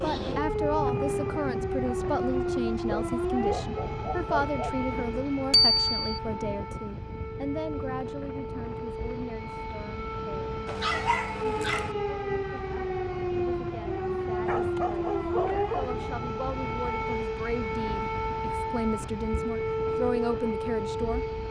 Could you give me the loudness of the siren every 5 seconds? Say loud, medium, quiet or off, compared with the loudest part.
loud, medium, loud, loud, loud.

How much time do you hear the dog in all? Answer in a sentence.
The dog can be heard for 5 seconds in total.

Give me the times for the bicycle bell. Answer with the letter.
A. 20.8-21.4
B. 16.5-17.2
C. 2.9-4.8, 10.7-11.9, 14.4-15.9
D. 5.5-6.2
D.